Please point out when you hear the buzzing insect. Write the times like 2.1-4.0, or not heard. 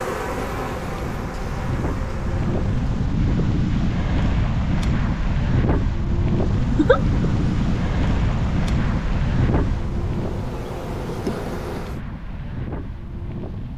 0.0-3.2, 6.4-12.0.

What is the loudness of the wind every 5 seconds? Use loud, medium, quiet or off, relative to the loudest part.
loud, loud, medium.